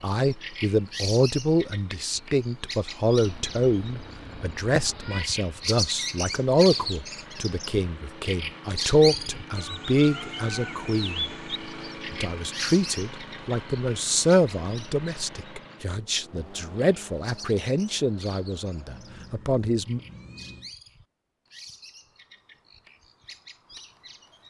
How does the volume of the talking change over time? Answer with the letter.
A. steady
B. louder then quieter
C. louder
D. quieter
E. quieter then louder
A.